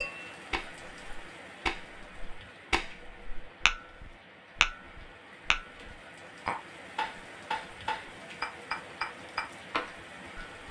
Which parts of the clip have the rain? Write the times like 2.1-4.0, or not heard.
0.0-10.6.